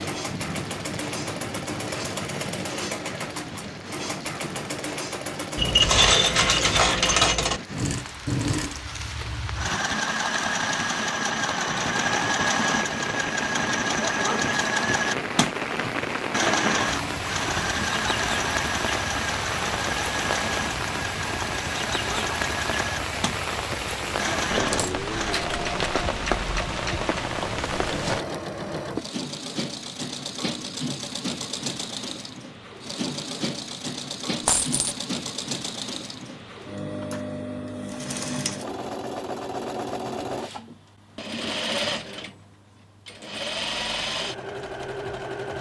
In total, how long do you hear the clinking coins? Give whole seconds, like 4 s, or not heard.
4 s.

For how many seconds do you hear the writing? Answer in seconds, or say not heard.
not heard.